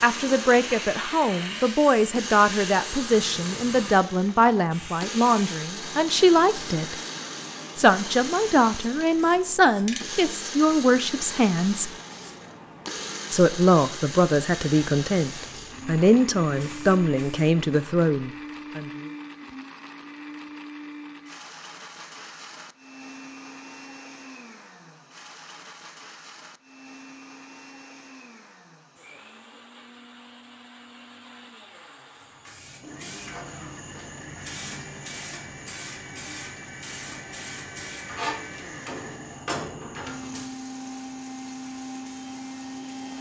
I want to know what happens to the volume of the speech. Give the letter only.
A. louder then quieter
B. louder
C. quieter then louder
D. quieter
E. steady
E.